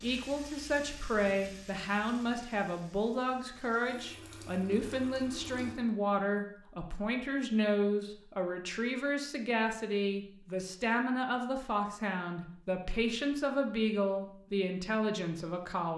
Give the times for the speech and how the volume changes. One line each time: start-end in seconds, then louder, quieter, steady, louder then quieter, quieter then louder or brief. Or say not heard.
0.0-15.9 steady.